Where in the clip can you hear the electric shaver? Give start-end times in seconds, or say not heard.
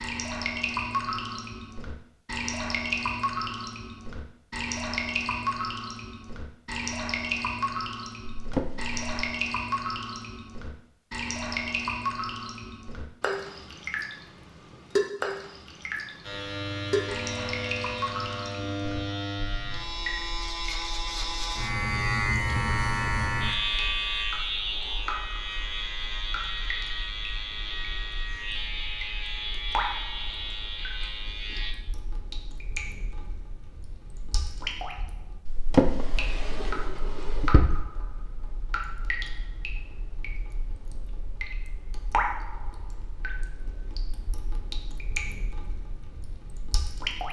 16.2-31.8.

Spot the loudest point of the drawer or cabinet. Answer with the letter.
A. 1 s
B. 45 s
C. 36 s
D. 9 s
C.